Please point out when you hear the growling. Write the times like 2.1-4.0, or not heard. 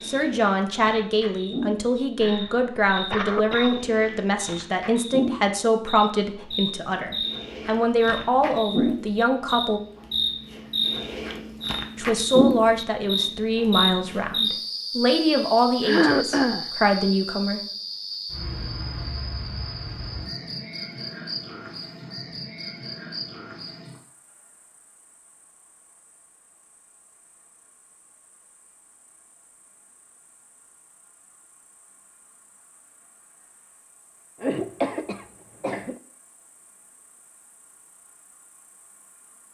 not heard.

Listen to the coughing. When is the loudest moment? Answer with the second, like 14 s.
16 s.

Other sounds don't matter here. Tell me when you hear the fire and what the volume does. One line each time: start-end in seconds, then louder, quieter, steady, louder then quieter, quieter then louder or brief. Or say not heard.
not heard.